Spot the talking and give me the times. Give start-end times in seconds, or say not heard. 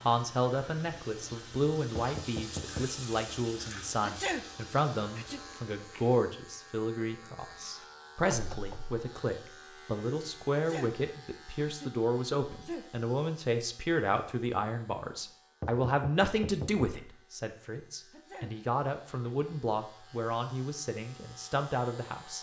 0.0-22.3.